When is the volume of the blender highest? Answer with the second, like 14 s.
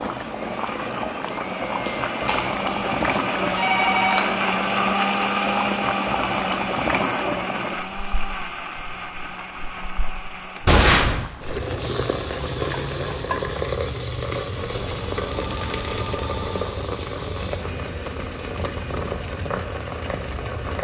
5 s.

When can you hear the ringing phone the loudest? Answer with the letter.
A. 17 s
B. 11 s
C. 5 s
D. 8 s
B.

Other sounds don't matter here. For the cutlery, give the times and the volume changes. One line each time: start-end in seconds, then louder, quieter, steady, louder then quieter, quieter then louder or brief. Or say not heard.
not heard.